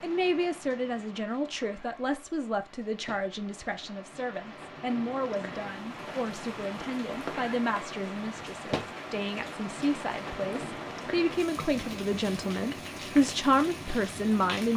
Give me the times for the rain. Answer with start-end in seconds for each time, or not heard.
0.0-14.7.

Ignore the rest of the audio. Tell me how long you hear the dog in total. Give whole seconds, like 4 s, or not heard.
not heard.